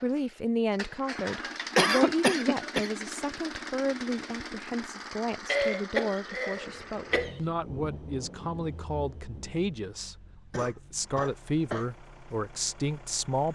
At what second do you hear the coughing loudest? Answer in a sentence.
The volume of the coughing peaks at 2 seconds.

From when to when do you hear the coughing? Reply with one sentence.
You can hear the coughing from 1.1 to 2.9 s, from 5.5 to 7.4 s and from 10.5 to 11.8 s.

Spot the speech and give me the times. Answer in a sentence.
The speech can be heard from 0.0 to 13.5 s.